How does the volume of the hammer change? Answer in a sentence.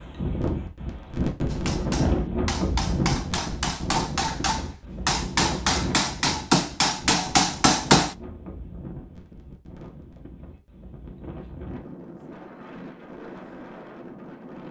The volume of the hammer goes up.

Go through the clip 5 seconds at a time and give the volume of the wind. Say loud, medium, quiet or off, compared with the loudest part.
loud, medium, quiet.